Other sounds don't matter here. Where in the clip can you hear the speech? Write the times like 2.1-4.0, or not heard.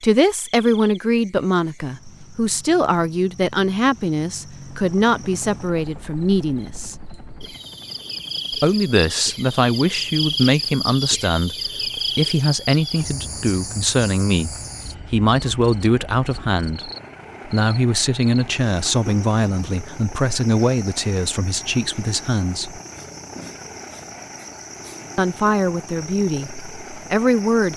0.0-7.0, 8.5-22.8, 25.1-27.7.